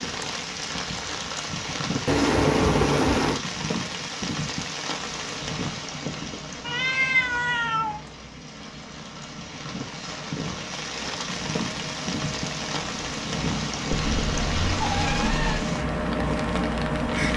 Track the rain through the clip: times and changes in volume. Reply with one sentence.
The rain can be heard from 0.0 to 17.3 s, getting quieter then louder.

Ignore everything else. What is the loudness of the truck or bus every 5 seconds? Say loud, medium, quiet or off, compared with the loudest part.
off, quiet, medium, loud.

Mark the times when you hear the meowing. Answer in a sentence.
The meowing can be heard from 2.0 to 3.4 s, from 6.6 to 8.0 s and from 13.9 to 15.7 s.